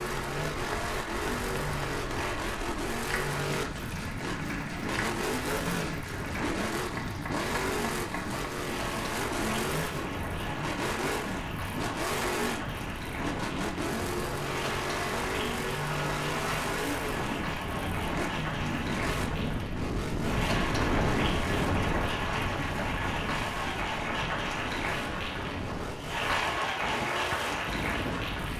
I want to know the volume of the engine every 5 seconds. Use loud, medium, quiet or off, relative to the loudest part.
loud, loud, loud, loud, medium, medium.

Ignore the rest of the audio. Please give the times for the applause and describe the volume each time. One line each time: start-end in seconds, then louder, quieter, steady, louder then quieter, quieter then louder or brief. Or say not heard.
0.0-28.5 louder.